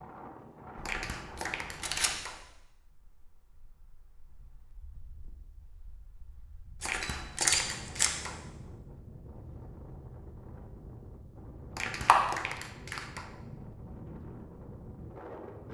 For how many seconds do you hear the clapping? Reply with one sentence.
The clapping can be heard for 5 seconds in total.